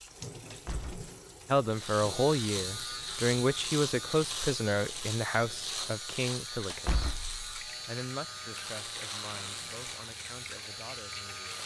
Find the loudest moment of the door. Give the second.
7 s.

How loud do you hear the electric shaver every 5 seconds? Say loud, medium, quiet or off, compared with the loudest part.
loud, loud, medium.